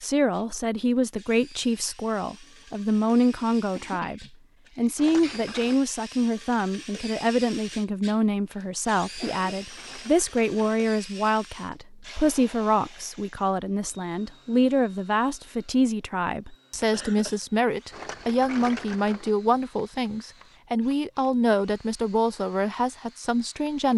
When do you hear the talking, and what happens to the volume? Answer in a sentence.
You can hear the talking from 0.0 to 23.9 s, at a steady volume.